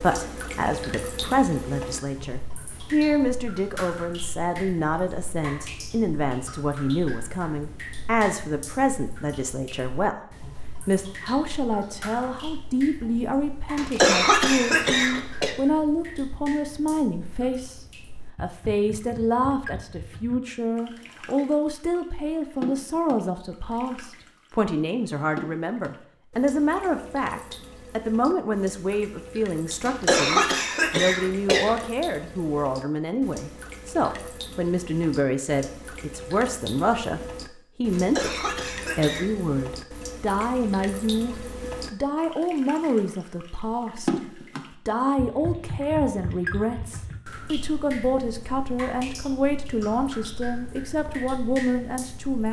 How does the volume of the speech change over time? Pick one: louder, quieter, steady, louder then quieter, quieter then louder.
steady.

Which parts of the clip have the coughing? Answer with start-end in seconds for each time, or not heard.
13.8-15.6, 29.9-31.9, 37.9-39.3.